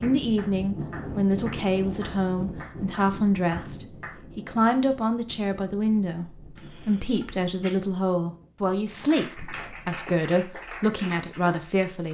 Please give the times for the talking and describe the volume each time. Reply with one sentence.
You can hear the talking from 0.0 to 12.0 s, at a steady volume.